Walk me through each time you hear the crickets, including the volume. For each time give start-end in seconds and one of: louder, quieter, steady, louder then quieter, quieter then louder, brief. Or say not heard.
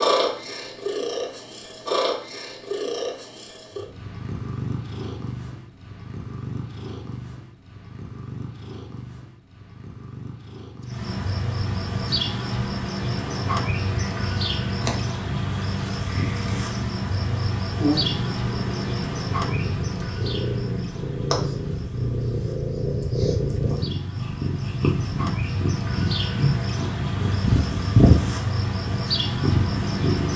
10.8-30.3 quieter then louder.